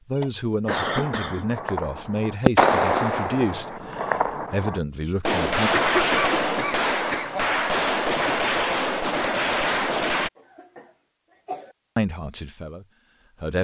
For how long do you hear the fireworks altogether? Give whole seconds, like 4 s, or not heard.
10 s.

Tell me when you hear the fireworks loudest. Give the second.
3 s.